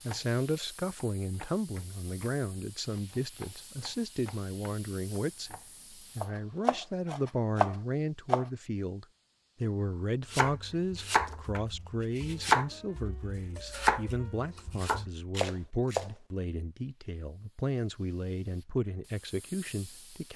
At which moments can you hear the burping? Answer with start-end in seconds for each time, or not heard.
not heard.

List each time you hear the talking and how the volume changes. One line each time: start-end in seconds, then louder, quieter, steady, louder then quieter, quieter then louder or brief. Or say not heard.
0.0-20.3 steady.